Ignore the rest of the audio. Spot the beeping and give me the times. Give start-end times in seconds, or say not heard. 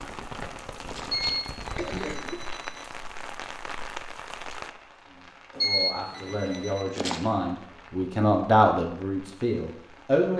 1.1-2.8, 5.5-6.8.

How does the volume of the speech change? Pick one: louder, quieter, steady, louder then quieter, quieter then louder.
louder then quieter.